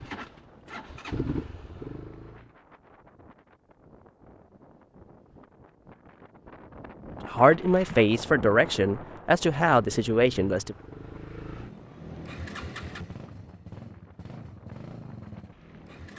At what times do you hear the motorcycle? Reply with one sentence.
You can hear the motorcycle from 0.0 to 2.5 s and from 9.6 to 16.1 s.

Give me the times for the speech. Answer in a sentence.
The speech can be heard from 7.2 to 10.8 s.